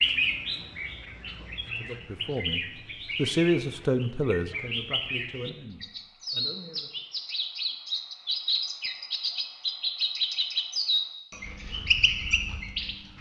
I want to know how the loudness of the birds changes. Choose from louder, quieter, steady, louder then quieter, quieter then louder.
louder.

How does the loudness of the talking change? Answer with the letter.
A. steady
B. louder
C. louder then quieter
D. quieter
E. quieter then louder
C.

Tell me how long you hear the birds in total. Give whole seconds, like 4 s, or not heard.
13 s.